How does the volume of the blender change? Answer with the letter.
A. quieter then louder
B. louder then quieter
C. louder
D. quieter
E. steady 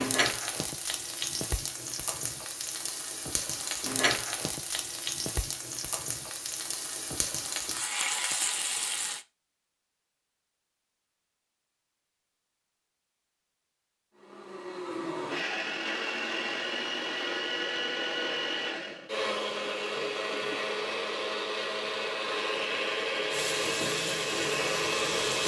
E.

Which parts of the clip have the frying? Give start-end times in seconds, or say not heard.
0.0-9.2, 23.3-25.4.